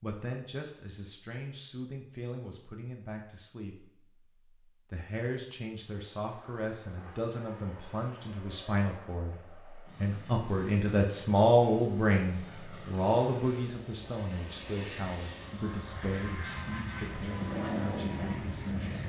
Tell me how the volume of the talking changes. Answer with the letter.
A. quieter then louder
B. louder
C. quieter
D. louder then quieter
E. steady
D.